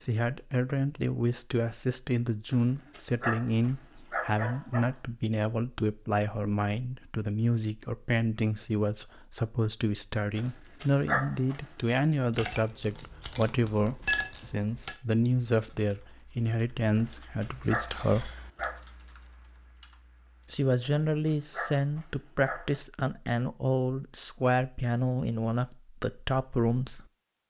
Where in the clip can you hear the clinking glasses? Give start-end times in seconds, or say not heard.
12.3-14.9.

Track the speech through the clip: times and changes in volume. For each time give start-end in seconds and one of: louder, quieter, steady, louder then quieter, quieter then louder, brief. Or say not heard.
0.0-18.3 steady
20.5-27.1 steady.